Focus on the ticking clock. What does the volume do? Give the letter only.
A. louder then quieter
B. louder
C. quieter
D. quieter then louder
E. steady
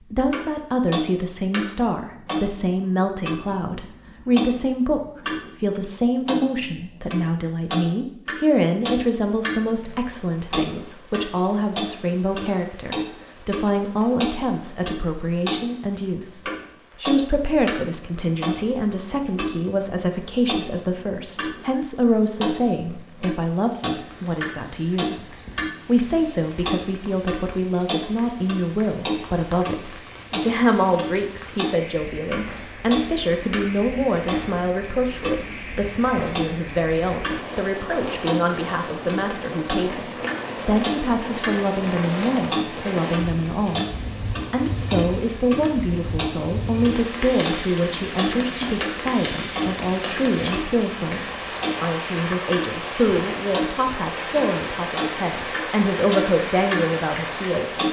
E.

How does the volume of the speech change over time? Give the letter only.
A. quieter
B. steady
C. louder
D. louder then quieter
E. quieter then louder
B.